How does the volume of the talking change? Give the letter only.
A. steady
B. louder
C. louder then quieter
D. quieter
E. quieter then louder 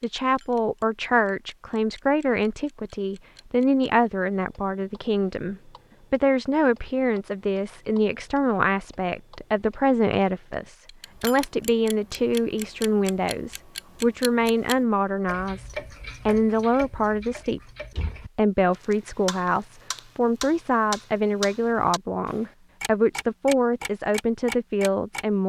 A.